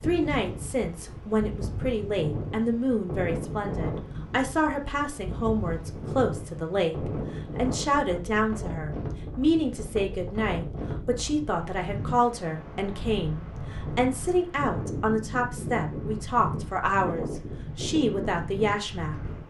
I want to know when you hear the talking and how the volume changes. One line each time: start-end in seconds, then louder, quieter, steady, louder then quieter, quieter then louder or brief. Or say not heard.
0.0-7.0 steady
7.5-19.1 steady.